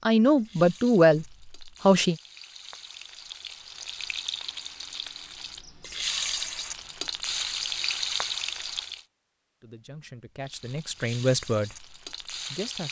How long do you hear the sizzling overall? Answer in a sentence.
The sizzling can be heard for 11 seconds in total.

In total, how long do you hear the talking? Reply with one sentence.
The talking can be heard for 5 seconds in total.